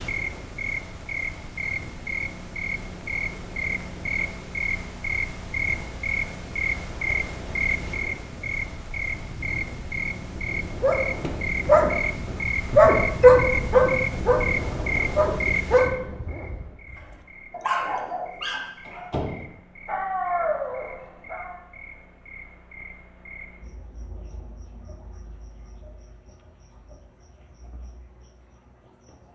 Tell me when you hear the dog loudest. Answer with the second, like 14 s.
13 s.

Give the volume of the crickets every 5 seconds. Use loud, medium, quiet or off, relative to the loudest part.
loud, loud, loud, medium, quiet, quiet.